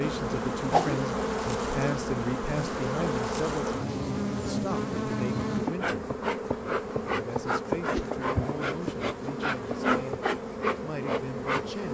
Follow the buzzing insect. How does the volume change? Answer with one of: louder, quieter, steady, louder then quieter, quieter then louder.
steady.